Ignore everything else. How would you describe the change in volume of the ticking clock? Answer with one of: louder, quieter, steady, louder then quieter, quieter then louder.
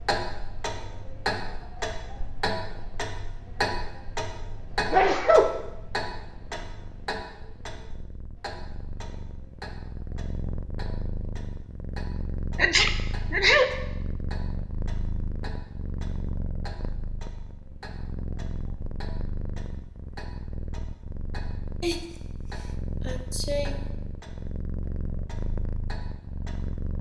quieter.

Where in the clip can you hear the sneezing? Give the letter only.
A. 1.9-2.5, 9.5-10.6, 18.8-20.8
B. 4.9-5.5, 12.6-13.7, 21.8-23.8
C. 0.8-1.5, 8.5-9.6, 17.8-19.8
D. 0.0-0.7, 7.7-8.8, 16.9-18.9
B.